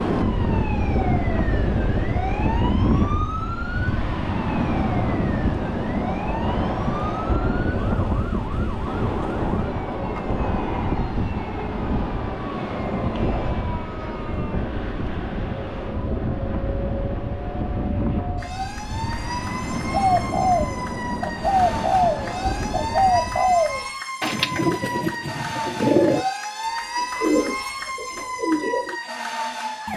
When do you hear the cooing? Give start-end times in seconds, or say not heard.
19.9-26.2, 26.9-28.9.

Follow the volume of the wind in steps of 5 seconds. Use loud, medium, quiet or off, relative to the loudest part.
loud, loud, loud, medium, medium, off.